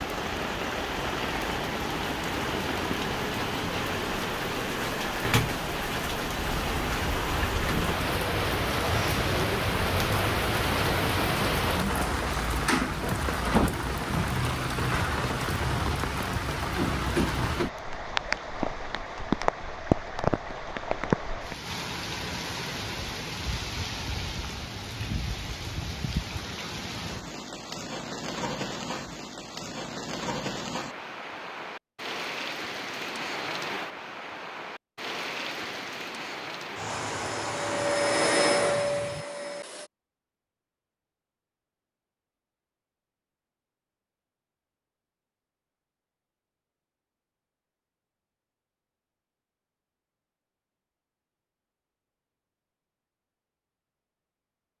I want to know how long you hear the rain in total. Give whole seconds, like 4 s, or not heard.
39 s.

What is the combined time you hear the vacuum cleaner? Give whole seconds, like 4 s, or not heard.
3 s.